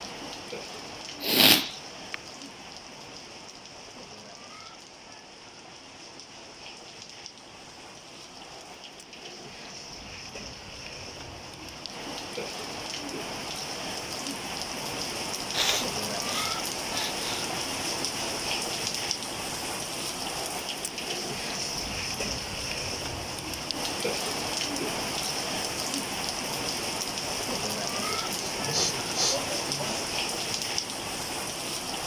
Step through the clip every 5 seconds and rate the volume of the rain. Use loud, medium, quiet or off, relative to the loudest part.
medium, quiet, medium, loud, loud, loud, loud.